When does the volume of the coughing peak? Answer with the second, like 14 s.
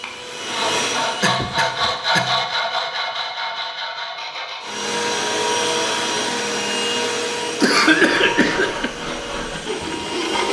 8 s.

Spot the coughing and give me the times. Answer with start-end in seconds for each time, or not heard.
1.2-2.4, 7.6-8.9.